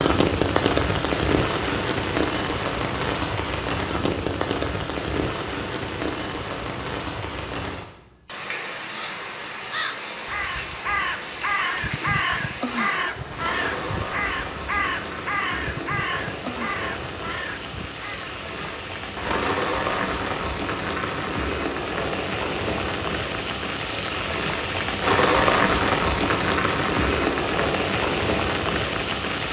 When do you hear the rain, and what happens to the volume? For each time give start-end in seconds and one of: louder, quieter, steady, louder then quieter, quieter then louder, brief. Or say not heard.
0.0-29.4 quieter then louder.